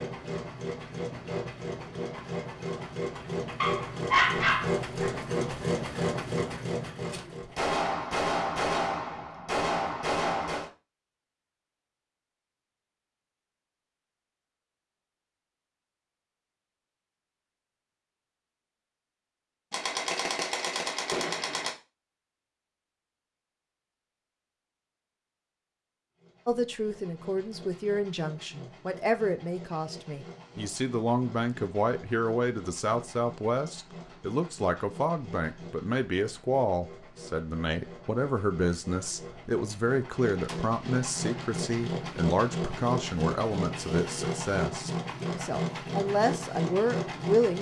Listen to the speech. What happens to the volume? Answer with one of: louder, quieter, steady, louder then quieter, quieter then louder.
steady.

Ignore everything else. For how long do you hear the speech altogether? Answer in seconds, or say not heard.
21 s.